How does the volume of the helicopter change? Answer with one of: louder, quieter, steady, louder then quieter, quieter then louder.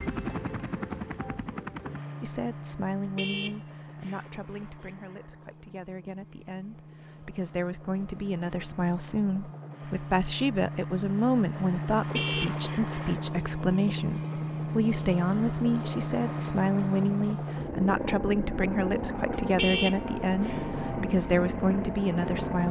quieter then louder.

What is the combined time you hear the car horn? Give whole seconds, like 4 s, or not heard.
4 s.